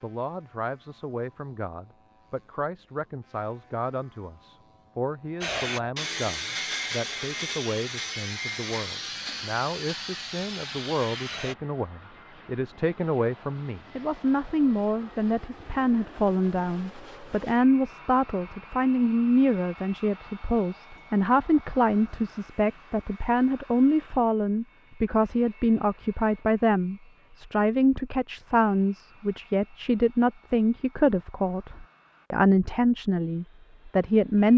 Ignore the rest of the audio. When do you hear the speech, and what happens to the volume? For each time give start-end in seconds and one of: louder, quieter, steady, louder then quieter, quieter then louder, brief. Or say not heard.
0.0-34.5 louder.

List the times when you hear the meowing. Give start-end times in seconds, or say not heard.
not heard.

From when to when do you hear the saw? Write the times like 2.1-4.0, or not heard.
5.4-11.6.